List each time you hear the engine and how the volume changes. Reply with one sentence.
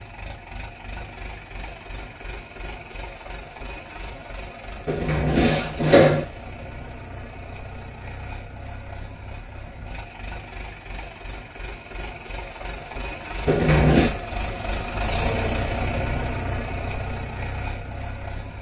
You can hear the engine from 0.0 to 18.5 s, getting louder.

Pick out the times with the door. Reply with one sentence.
The door can be heard from 4.8 to 6.2 s and from 13.4 to 14.2 s.